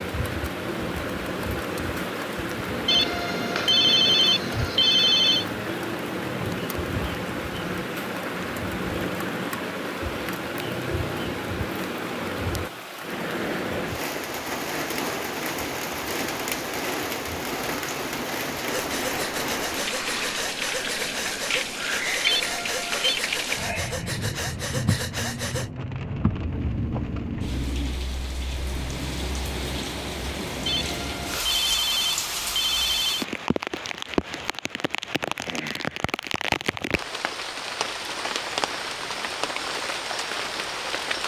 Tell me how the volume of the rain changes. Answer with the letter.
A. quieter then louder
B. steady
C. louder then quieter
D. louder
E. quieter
B.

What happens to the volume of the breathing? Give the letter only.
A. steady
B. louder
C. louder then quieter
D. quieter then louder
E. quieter
A.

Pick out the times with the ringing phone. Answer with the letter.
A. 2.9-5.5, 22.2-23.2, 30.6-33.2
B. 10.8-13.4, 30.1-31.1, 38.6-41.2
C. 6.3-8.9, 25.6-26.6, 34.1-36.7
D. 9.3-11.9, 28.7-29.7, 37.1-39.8
A.